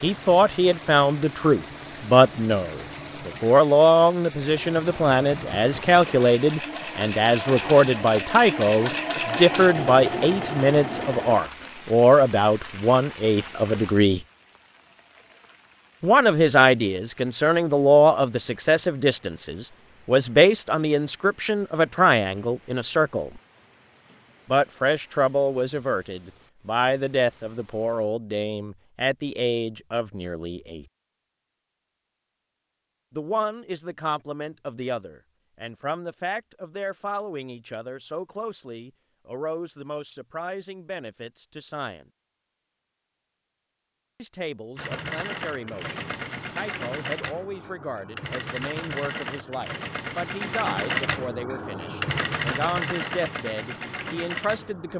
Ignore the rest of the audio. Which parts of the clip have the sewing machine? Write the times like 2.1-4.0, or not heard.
0.0-11.4, 44.8-54.9.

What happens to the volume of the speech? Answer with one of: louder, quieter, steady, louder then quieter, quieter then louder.
quieter.